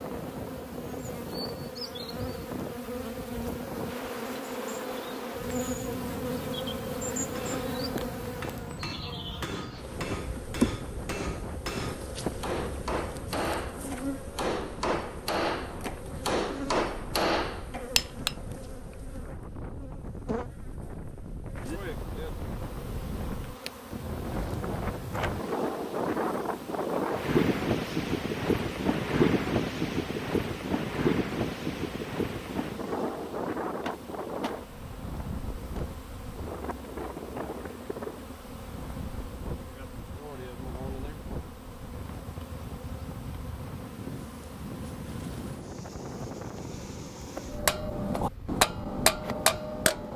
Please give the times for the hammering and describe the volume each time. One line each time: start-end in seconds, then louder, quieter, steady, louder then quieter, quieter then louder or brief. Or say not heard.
7.3-18.4 louder
47.5-50.1 brief.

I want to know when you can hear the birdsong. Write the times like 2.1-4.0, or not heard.
not heard.